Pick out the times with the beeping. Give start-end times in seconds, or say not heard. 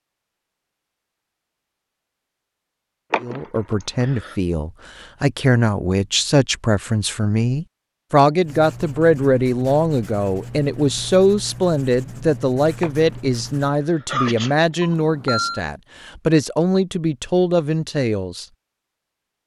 14.8-15.6.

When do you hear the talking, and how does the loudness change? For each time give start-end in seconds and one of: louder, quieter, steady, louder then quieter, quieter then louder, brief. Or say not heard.
3.2-18.4 steady.